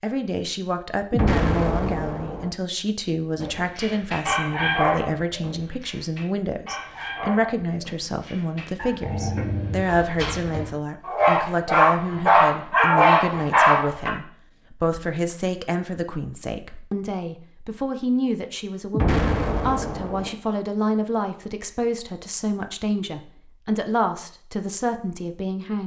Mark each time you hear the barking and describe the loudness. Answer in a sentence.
The barking can be heard from 3.4 to 14.1 s, getting quieter then louder.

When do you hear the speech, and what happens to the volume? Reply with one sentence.
You can hear the speech from 0.0 to 25.8 s, at a steady volume.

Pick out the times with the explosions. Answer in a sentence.
You can hear the explosions from 1.1 to 2.5 s and from 18.9 to 20.3 s.